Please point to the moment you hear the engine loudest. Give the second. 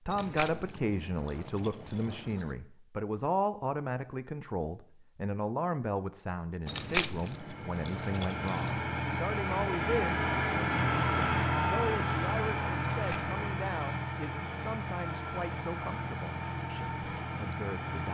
11 s.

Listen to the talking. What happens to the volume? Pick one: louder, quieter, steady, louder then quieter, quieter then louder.
quieter.